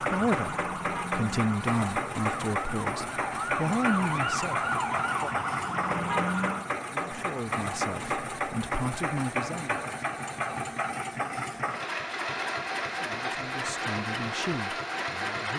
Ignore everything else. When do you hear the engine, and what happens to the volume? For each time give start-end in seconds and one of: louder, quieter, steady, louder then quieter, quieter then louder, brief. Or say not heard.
0.0-15.5 steady.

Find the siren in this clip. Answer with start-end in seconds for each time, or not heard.
0.0-6.7.